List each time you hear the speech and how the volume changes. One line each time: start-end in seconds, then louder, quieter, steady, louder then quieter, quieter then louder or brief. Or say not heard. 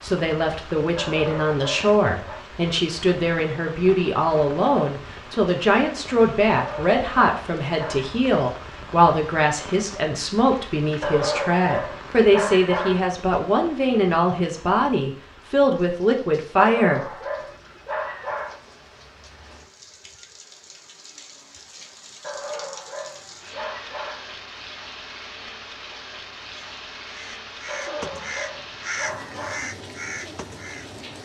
0.0-17.1 steady.